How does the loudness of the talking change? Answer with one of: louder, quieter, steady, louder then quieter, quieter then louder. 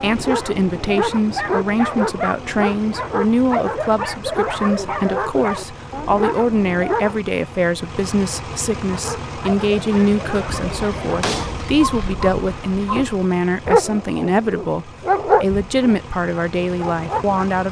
steady.